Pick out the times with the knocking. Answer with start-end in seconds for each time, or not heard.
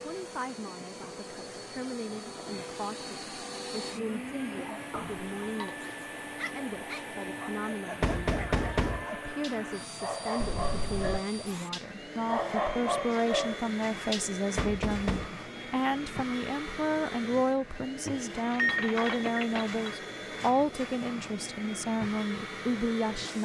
8.0-9.1, 14.6-15.3.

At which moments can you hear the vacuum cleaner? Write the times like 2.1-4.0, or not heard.
0.0-23.4.